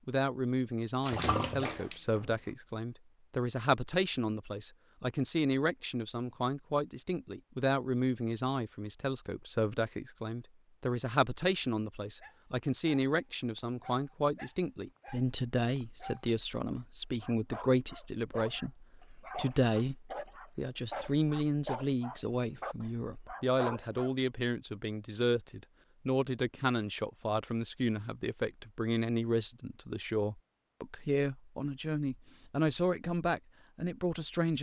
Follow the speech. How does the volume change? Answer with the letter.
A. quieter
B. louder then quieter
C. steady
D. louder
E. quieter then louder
C.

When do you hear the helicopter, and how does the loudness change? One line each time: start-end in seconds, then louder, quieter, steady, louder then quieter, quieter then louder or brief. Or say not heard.
not heard.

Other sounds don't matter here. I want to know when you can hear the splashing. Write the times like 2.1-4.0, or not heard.
1.0-2.4.